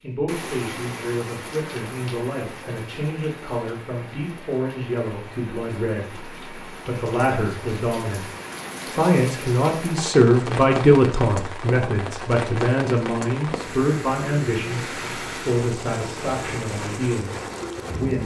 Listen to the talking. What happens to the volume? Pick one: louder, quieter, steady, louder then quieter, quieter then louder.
louder then quieter.